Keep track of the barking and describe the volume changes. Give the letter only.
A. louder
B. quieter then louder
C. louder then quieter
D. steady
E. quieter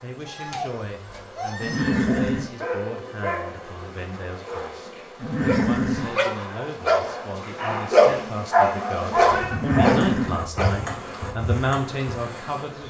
A.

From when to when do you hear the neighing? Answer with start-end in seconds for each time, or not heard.
1.6-2.5, 5.2-6.2, 9.5-10.4.